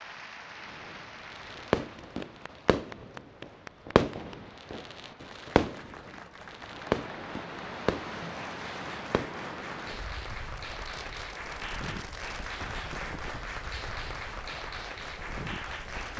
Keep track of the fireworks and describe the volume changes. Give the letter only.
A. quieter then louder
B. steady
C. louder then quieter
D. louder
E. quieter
E.